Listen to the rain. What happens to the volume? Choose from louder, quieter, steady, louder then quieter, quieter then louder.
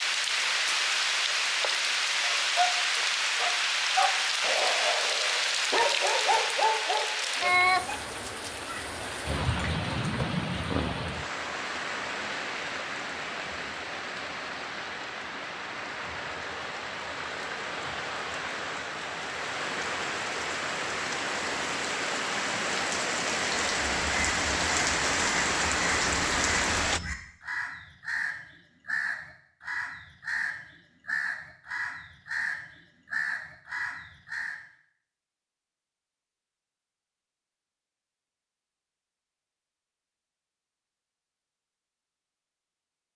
quieter then louder.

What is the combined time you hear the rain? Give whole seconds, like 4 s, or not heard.
27 s.